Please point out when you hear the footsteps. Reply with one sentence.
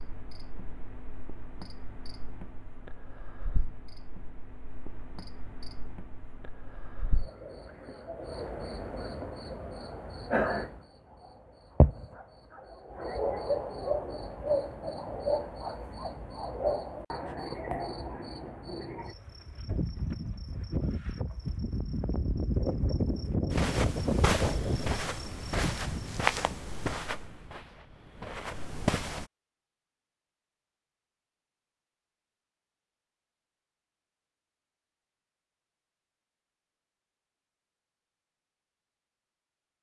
You can hear the footsteps from 23.5 to 29.2 s.